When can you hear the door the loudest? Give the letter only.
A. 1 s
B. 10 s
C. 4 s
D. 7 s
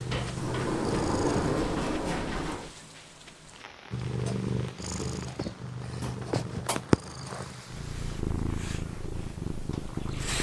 A.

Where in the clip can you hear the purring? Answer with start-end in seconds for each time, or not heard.
0.0-1.5, 3.9-10.3.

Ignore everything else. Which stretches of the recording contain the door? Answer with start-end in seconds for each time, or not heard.
0.1-2.7, 6.0-6.8.